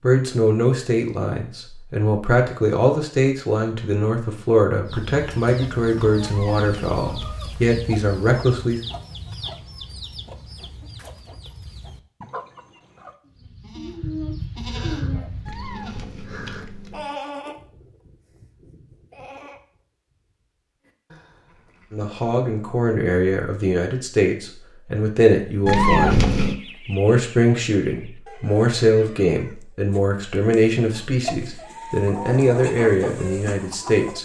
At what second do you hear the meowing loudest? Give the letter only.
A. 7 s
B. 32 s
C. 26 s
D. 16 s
C.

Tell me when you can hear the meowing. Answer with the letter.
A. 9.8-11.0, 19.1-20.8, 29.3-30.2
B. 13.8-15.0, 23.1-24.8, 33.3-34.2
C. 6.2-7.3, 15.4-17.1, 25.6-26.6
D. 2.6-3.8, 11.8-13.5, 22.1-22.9
C.